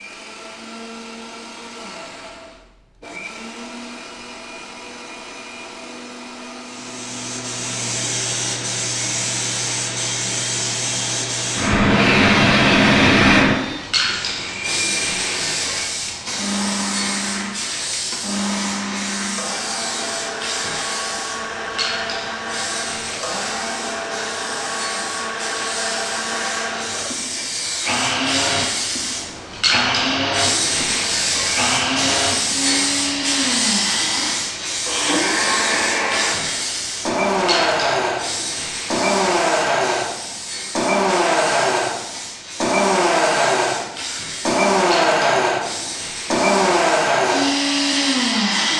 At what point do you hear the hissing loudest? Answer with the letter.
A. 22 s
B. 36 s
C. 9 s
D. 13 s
D.